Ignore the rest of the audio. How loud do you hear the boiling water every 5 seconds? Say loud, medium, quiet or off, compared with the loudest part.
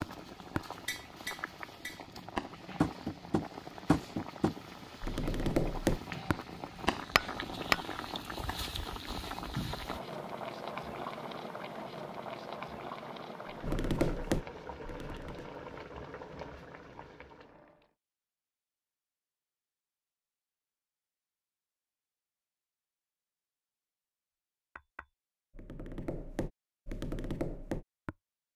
medium, loud, loud, medium, off, off.